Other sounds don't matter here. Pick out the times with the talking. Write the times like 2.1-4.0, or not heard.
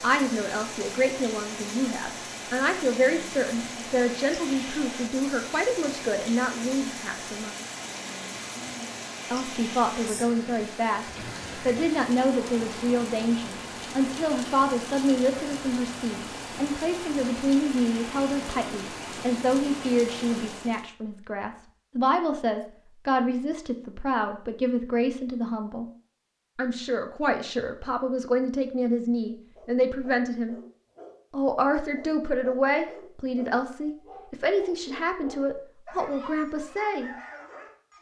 0.0-7.5, 9.3-25.9, 26.6-30.6, 31.3-37.1.